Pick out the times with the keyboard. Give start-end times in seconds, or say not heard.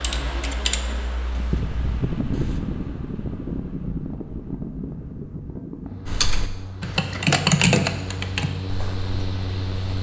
0.0-2.6, 6.0-9.9.